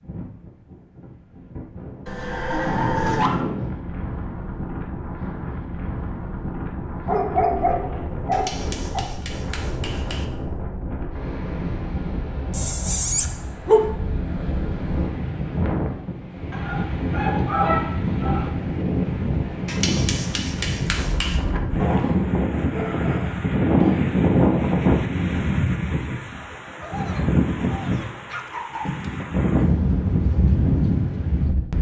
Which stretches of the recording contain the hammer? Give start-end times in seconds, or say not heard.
8.3-10.2, 19.6-21.4.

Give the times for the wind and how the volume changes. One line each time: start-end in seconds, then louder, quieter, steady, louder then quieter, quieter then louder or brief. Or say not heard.
0.0-31.7 louder.